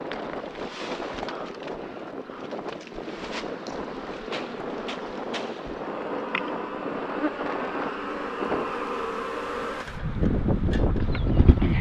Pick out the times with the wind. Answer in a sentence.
You can hear the wind from 0.0 to 11.7 s.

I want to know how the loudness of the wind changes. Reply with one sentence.
The loudness of the wind goes up.